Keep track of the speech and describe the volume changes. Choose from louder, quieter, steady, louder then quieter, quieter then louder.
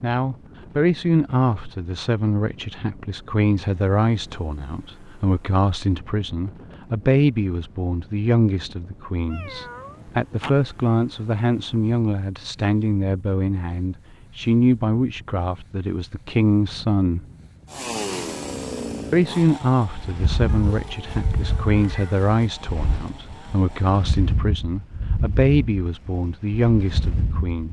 steady.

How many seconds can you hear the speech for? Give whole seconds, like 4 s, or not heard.
26 s.